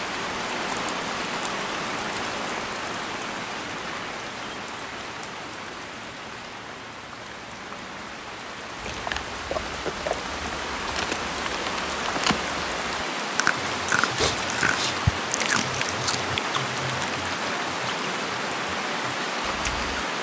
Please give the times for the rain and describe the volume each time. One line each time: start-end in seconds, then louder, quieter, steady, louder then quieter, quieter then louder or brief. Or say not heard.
0.0-20.1 quieter then louder.